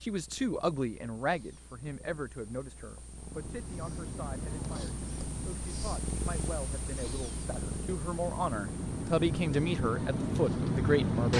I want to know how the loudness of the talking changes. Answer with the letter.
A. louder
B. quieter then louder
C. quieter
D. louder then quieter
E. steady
B.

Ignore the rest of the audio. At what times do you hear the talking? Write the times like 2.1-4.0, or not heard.
0.0-11.3.